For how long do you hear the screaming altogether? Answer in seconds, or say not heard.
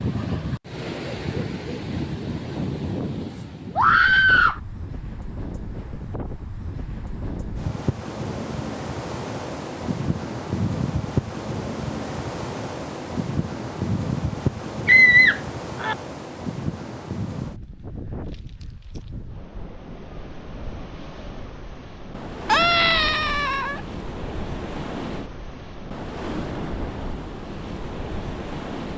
3 s.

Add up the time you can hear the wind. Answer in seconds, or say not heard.
29 s.